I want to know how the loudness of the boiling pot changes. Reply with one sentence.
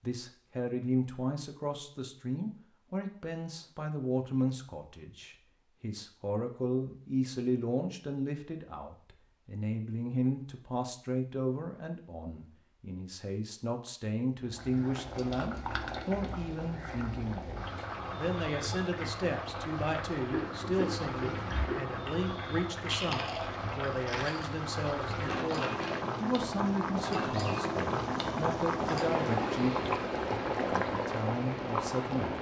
The loudness of the boiling pot goes up.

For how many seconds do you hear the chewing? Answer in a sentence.
You can hear the chewing for 6 seconds altogether.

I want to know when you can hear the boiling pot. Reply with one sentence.
The boiling pot can be heard from 14.4 to 32.3 s.